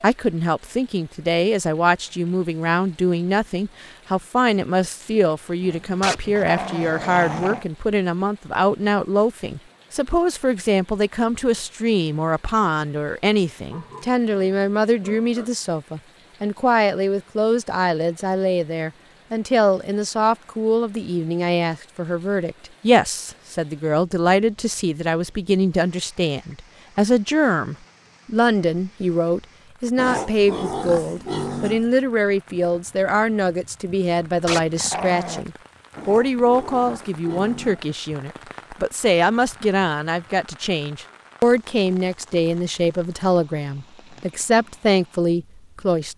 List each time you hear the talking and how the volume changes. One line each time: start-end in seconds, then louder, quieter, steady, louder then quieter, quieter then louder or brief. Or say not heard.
0.0-46.1 steady.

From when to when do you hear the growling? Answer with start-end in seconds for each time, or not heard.
6.0-7.7, 34.5-35.5.